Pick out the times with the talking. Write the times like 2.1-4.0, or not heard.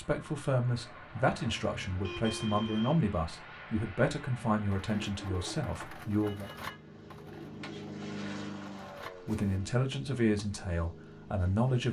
0.0-6.5, 9.2-11.8.